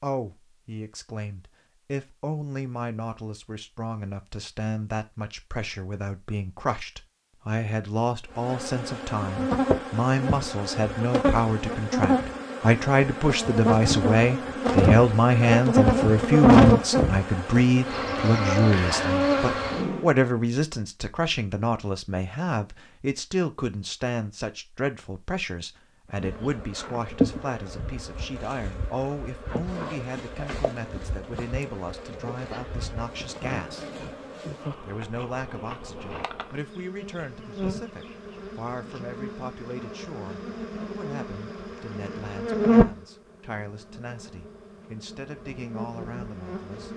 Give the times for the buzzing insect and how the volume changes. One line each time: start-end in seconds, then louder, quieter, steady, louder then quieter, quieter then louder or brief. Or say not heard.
8.3-20.1 louder then quieter
26.1-46.9 quieter then louder.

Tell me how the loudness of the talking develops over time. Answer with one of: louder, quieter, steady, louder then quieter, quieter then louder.
louder then quieter.